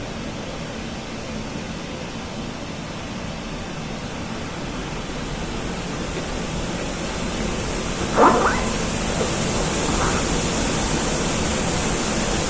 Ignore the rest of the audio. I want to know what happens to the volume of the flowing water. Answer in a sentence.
The loudness of the flowing water goes up.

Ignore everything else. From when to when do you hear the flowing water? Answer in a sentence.
You can hear the flowing water from 0.0 to 12.4 s.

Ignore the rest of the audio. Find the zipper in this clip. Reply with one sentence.
You can hear the zipper from 8.1 to 10.2 s.